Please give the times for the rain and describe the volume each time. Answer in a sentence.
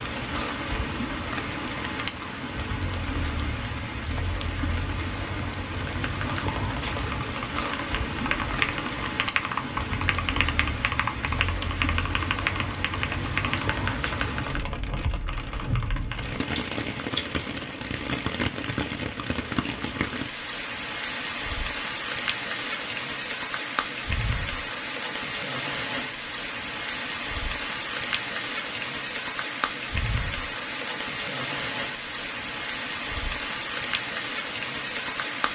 The rain can be heard from 0.0 to 35.5 s, at a steady volume.